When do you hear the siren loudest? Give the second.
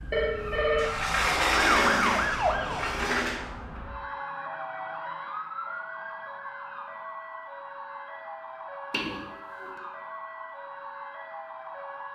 2 s.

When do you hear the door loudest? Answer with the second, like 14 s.
2 s.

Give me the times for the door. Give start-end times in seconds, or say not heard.
0.8-3.4, 8.9-9.7.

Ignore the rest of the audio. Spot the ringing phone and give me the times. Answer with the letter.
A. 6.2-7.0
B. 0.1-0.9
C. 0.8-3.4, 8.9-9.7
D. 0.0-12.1
B.